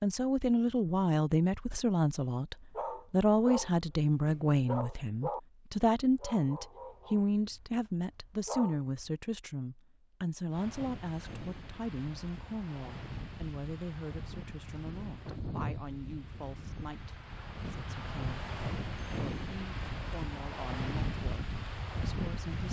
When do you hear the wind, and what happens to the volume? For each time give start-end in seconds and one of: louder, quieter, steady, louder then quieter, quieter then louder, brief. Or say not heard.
10.5-22.6 louder.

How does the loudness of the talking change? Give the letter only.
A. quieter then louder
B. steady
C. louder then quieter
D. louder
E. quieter
E.